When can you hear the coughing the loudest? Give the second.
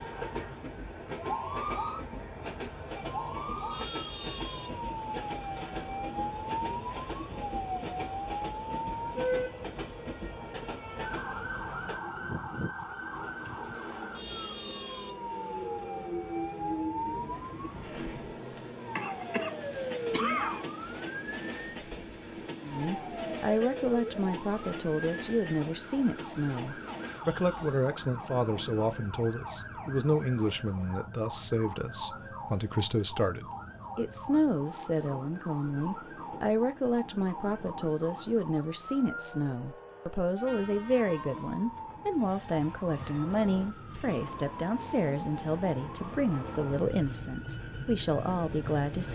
20 s.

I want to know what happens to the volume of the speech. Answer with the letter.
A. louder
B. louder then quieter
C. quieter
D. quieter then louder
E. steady
E.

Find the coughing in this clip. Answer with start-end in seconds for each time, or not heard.
18.9-20.6.